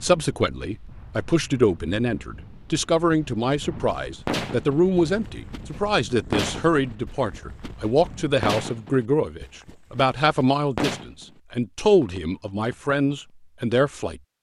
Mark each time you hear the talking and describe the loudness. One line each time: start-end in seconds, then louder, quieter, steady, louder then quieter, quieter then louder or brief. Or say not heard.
0.0-14.2 steady.